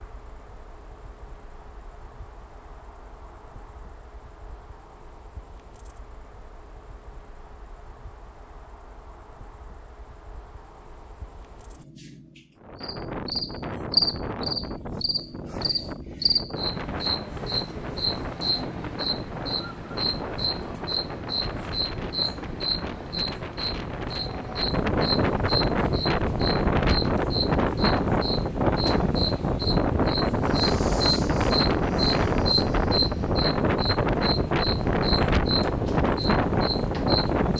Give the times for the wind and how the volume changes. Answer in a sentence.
The wind can be heard from 12.6 to 37.5 s, getting louder.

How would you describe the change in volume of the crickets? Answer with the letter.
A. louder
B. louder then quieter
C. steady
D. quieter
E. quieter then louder
A.